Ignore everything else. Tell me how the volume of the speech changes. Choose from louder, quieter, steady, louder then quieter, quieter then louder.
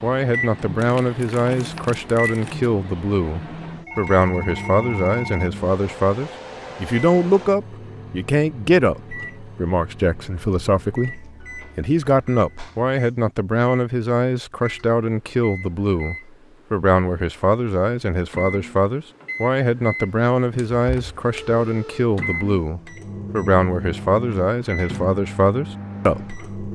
steady.